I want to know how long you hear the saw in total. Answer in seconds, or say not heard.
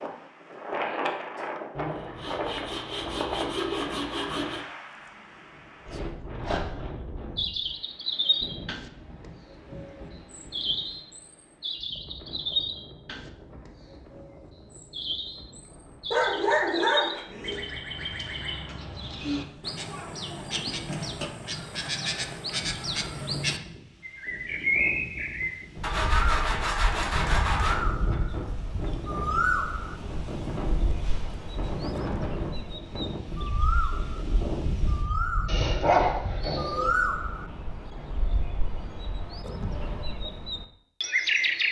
5 s.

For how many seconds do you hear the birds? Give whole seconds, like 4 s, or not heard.
34 s.